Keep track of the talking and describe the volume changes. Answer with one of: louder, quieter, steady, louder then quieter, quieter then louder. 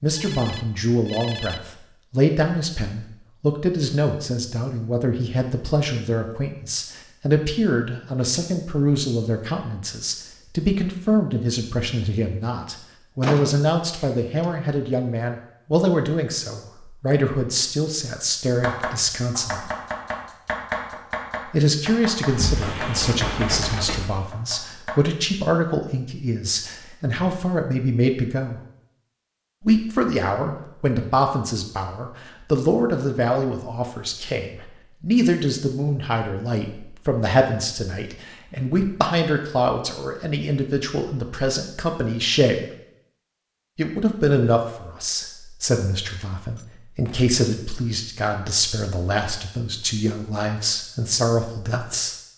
steady.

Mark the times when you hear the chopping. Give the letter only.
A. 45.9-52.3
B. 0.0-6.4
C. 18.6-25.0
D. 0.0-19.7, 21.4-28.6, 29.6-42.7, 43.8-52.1
C.